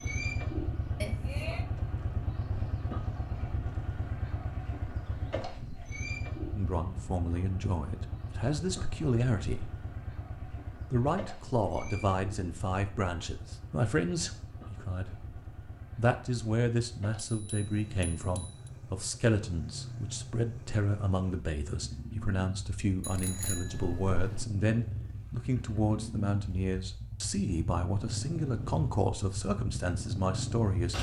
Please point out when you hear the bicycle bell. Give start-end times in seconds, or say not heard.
1.0-1.6, 17.2-18.7, 23.0-24.4.